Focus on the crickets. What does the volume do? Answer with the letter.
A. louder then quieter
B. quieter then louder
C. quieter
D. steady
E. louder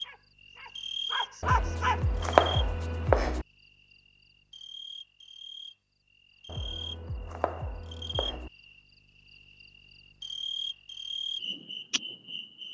B.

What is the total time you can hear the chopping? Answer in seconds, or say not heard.
4 s.